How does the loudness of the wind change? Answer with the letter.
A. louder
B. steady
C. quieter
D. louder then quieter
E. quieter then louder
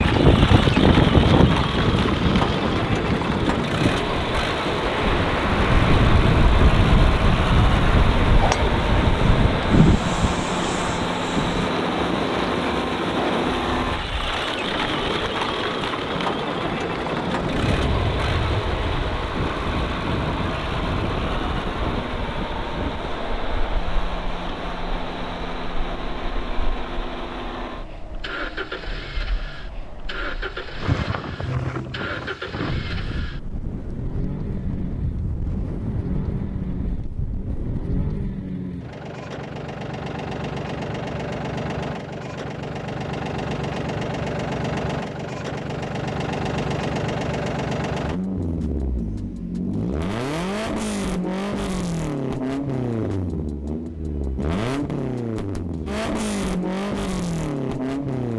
E.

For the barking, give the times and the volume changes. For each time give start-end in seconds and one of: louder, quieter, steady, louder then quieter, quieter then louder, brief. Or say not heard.
not heard.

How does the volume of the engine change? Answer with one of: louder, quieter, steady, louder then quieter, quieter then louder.
quieter then louder.